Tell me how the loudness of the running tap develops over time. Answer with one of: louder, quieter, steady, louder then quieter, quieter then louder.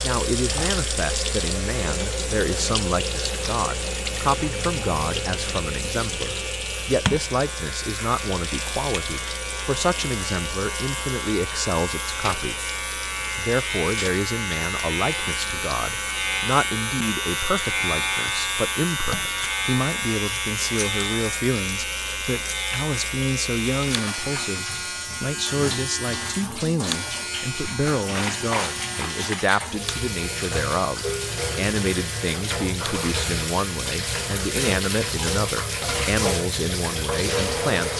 quieter then louder.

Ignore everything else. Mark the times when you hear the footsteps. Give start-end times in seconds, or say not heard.
not heard.